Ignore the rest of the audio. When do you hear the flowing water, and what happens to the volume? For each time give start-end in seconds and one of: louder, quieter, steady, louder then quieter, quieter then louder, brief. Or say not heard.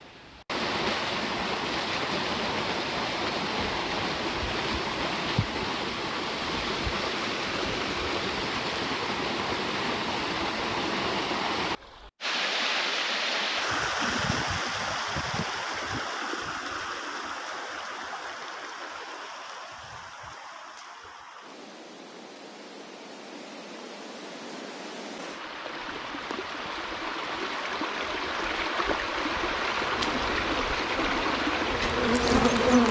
0.0-32.8 quieter then louder.